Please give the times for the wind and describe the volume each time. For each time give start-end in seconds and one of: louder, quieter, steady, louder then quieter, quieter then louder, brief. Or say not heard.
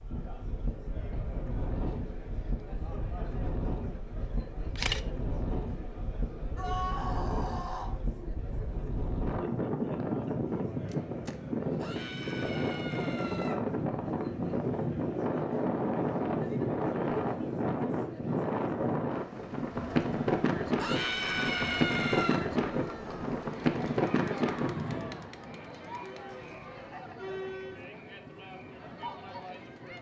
0.0-29.9 louder then quieter.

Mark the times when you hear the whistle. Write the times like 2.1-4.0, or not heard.
not heard.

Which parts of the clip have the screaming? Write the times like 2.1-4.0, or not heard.
6.5-8.0, 11.8-13.6, 20.8-22.4.